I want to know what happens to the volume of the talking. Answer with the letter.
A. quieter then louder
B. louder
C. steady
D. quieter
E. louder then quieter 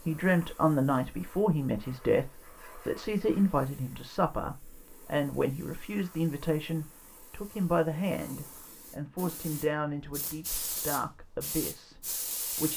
D.